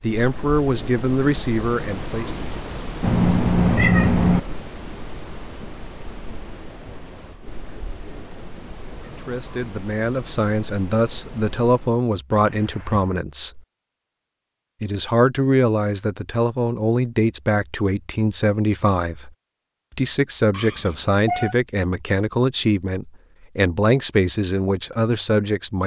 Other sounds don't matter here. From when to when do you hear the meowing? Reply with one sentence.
You can hear the meowing from 3.0 to 4.4 s, from 12.3 to 13.2 s and from 20.5 to 21.6 s.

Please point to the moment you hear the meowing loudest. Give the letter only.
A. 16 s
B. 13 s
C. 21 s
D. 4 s
D.